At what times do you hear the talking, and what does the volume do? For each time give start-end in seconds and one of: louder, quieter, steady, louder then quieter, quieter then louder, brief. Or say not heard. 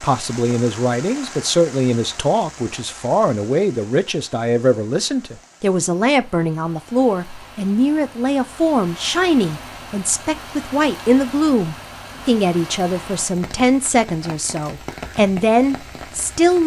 0.0-16.6 steady.